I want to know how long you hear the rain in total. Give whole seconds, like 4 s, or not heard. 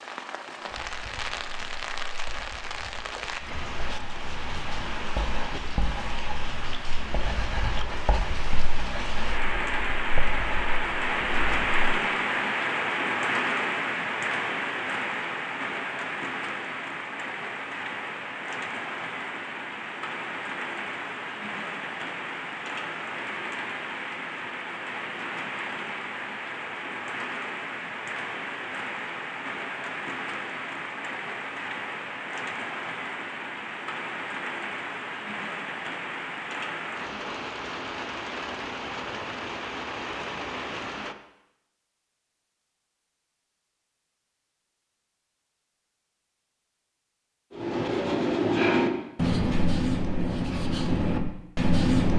41 s.